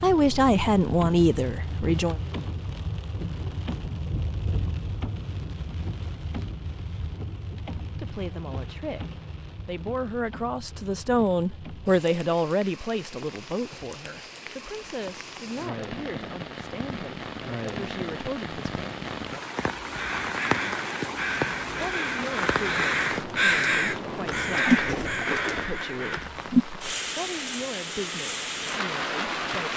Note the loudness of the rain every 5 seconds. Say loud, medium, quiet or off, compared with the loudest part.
medium, medium, quiet, medium, loud, loud.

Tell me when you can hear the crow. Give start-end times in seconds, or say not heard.
19.9-26.3.